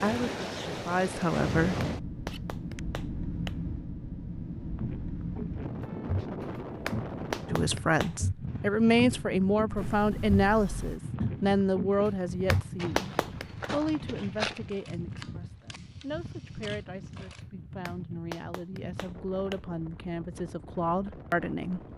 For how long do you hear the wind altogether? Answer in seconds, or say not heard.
22 s.